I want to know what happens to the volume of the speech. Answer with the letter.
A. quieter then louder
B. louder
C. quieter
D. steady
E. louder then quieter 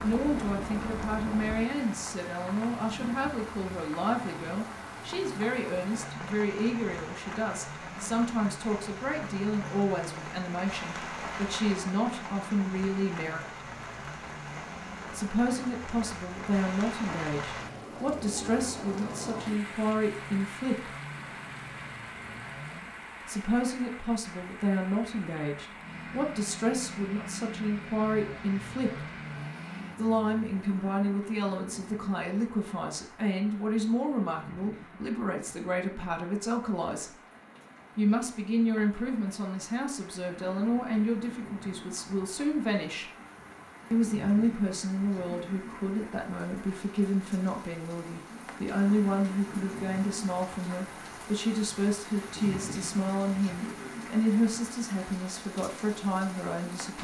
D.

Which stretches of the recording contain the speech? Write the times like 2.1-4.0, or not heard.
0.0-13.4, 15.1-20.9, 23.2-29.1, 29.9-37.1, 38.0-43.1, 43.9-56.9.